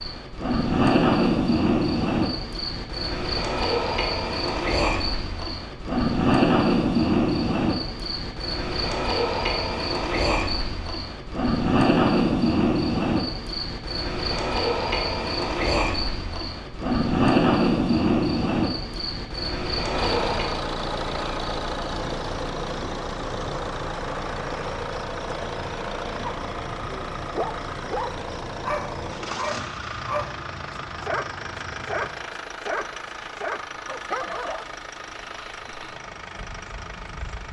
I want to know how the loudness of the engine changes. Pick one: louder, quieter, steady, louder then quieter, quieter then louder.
quieter.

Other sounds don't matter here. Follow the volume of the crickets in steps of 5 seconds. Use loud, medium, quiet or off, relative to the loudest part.
loud, loud, loud, loud, medium, quiet, quiet, quiet.